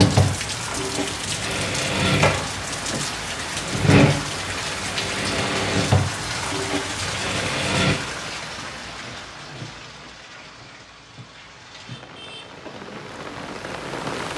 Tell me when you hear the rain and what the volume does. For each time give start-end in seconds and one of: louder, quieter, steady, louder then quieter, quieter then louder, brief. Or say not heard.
0.0-14.3 quieter.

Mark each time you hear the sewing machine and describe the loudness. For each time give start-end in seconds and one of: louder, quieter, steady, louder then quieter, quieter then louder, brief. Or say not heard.
0.0-8.0 louder then quieter.